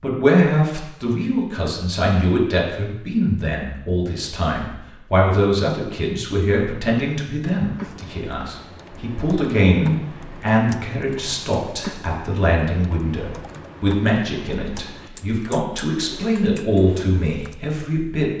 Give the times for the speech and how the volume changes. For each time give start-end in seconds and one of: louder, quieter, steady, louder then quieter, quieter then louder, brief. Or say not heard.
0.0-18.3 steady.